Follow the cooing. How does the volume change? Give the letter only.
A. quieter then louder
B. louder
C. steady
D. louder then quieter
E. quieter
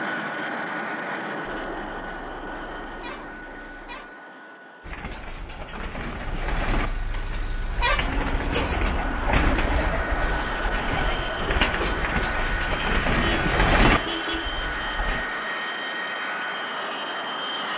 B.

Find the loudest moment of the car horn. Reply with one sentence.
The volume of the car horn peaks at 8 seconds.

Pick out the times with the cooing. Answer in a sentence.
You can hear the cooing from 4.8 to 15.2 s.